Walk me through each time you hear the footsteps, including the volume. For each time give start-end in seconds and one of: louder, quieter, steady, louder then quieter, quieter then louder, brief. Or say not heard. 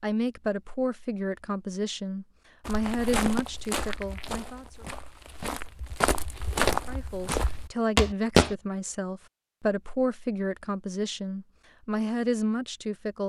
2.6-8.6 quieter then louder.